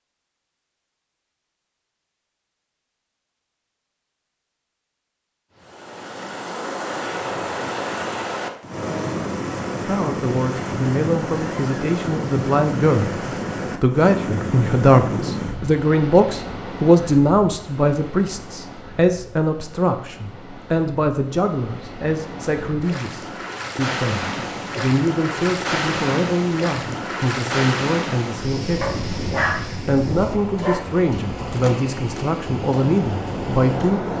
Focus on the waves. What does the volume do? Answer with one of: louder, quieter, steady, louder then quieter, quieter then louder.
quieter then louder.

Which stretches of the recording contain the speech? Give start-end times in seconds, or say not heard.
9.8-29.1, 29.9-34.1.